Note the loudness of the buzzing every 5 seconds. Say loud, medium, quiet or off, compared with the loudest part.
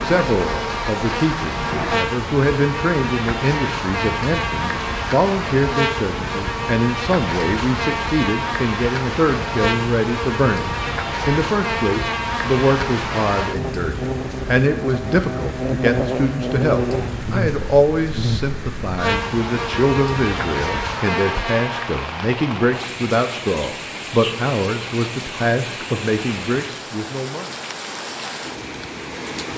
loud, loud, loud, loud, loud, off.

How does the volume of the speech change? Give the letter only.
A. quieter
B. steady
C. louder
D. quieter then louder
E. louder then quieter
B.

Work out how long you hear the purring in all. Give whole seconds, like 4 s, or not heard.
not heard.